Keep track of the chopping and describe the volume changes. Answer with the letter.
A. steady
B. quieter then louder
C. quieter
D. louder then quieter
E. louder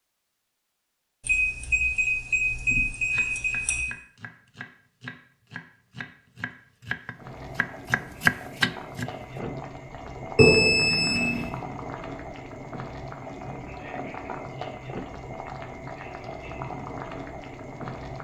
E.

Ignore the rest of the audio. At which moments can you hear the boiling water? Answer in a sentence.
You can hear the boiling water from 7.2 to 18.1 s.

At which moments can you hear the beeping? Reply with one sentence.
The beeping can be heard from 1.2 to 3.9 s and from 10.3 to 11.5 s.